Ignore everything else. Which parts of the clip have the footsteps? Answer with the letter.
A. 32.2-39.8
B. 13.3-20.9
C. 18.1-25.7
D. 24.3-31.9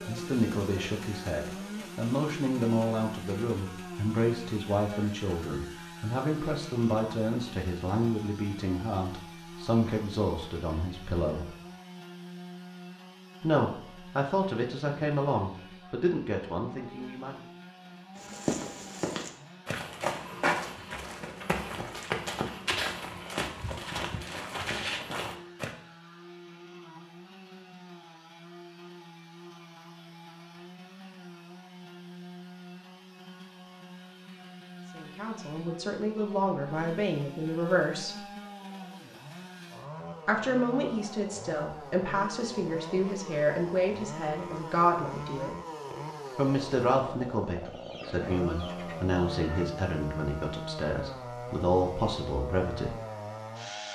C.